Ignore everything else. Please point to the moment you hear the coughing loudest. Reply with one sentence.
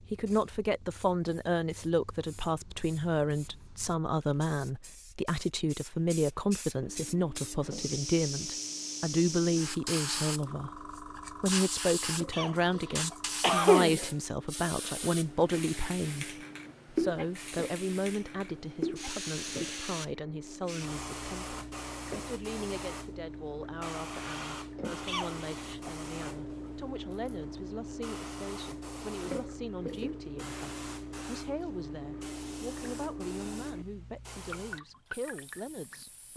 The volume of the coughing peaks at 14 seconds.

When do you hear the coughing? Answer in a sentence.
The coughing can be heard from 12.3 to 14.0 s and from 25.1 to 25.9 s.